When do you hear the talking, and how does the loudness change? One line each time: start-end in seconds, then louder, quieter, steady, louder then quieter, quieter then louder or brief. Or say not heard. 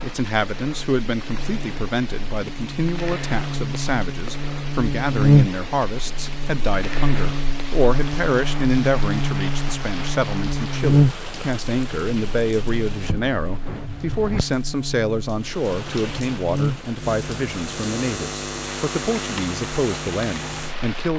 0.0-21.1 steady.